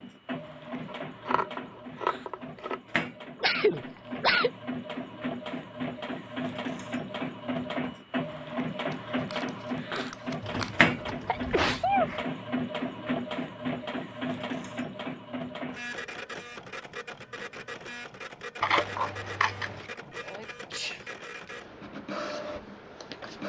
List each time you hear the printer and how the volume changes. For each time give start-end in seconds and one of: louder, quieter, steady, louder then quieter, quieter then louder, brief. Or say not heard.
0.0-23.4 louder then quieter.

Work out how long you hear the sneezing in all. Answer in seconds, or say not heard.
4 s.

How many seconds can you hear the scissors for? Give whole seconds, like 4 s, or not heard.
5 s.